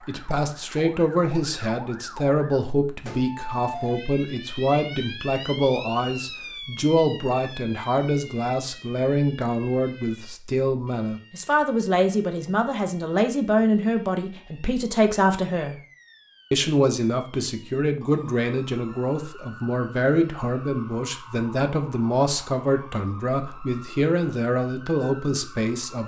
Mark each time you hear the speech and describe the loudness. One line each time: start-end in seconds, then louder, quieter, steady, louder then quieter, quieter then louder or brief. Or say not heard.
0.1-15.8 steady
16.5-26.0 steady.